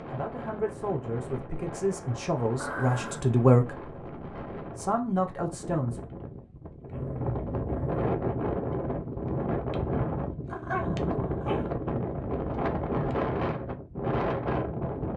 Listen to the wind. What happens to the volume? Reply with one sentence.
The loudness of the wind goes up.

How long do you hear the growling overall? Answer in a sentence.
The growling can be heard for 3 seconds in total.